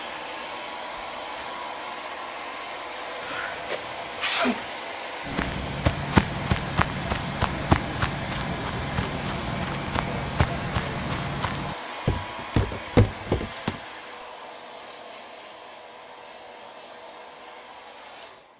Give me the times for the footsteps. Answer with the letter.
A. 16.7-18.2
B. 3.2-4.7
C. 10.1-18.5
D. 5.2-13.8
D.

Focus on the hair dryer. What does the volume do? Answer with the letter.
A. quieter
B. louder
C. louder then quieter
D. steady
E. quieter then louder
A.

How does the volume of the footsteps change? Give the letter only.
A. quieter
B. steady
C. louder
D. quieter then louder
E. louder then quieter
D.